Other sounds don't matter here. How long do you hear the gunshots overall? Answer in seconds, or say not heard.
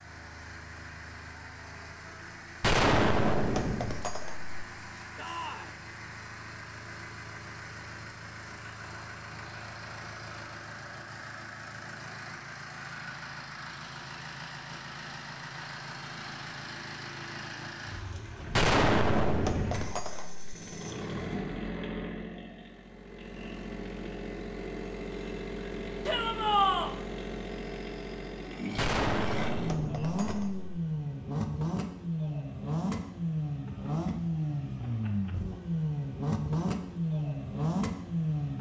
6 s.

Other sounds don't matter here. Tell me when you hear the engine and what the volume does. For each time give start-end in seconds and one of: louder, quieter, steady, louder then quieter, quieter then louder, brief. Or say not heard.
0.0-38.5 louder.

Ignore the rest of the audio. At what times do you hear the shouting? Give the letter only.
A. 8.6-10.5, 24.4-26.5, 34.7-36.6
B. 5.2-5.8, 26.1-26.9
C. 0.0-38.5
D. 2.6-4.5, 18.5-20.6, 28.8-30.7
B.